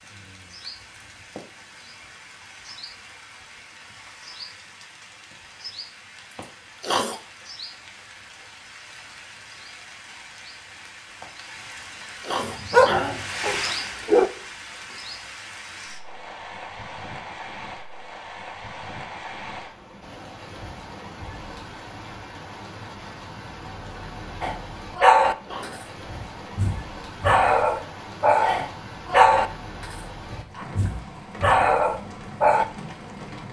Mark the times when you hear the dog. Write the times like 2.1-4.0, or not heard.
12.4-14.3, 24.4-32.6.